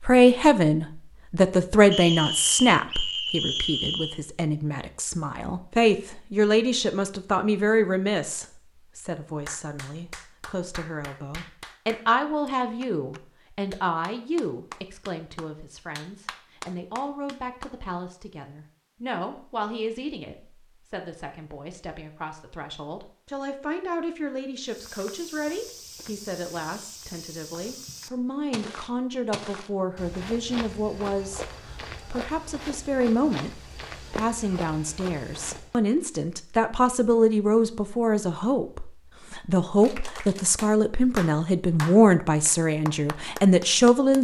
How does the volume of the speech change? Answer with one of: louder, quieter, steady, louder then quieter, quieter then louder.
quieter then louder.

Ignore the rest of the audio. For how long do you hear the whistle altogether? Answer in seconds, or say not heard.
2 s.